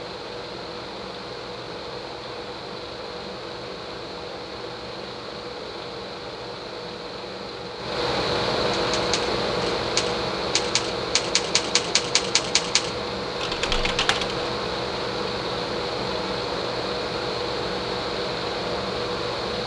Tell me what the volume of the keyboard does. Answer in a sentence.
The loudness of the keyboard stays about the same.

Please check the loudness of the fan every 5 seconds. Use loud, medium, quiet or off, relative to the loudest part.
medium, loud, loud, loud.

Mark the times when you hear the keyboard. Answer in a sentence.
You can hear the keyboard from 8.9 to 14.4 s.